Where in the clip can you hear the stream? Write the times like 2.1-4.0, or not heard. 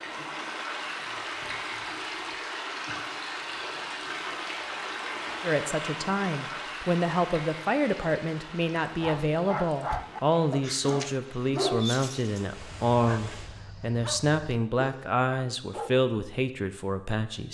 0.0-13.5.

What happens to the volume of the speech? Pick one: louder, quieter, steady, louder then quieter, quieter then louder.
steady.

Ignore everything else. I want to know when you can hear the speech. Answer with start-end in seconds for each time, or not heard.
5.4-17.5.